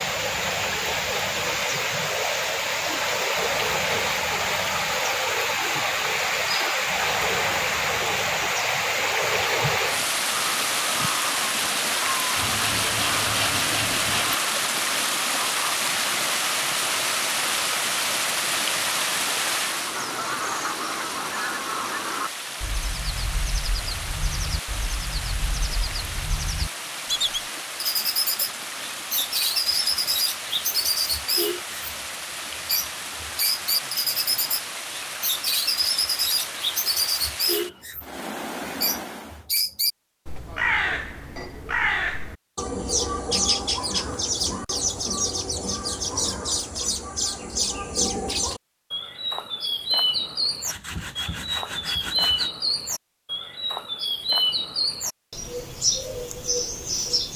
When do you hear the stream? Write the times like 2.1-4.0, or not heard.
0.0-39.5.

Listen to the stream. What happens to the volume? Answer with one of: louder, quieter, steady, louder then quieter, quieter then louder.
quieter.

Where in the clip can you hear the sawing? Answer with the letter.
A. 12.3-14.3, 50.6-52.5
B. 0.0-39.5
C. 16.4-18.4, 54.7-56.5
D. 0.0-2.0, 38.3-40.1
A.